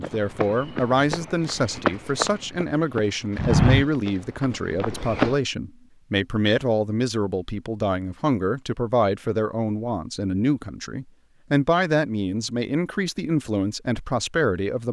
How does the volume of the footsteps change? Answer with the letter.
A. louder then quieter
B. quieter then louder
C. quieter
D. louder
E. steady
A.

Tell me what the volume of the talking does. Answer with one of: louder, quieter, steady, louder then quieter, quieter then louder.
steady.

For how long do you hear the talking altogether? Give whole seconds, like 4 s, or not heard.
15 s.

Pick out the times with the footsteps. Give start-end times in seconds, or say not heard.
0.0-5.3.